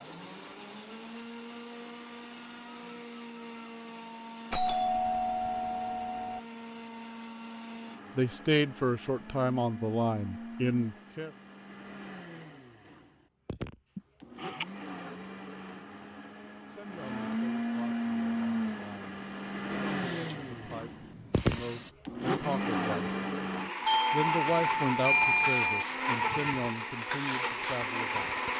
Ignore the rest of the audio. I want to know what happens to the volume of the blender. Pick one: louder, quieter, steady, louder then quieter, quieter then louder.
louder.